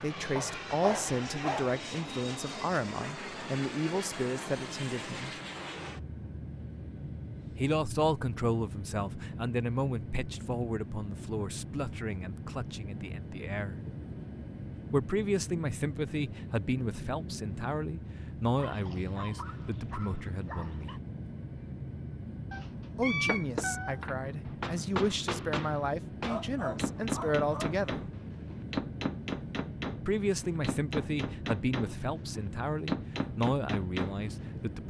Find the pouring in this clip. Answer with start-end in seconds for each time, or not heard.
not heard.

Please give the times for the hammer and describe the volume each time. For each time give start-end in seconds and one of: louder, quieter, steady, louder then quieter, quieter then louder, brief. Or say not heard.
23.2-34.5 steady.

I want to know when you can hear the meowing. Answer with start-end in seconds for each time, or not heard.
22.5-24.1.